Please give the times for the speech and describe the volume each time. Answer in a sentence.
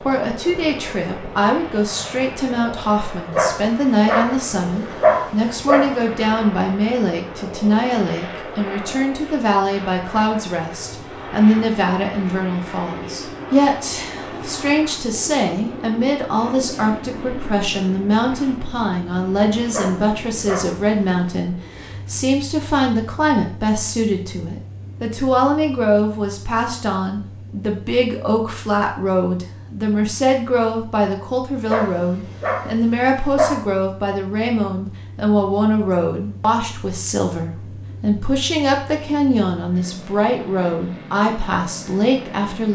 The speech can be heard from 0.0 to 42.6 s, at a steady volume.